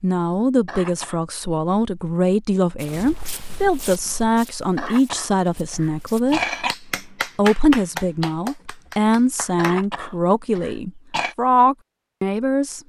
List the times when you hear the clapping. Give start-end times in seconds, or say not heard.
6.5-9.8.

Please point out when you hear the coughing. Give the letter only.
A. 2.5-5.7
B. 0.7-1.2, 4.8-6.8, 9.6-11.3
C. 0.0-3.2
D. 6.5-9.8
B.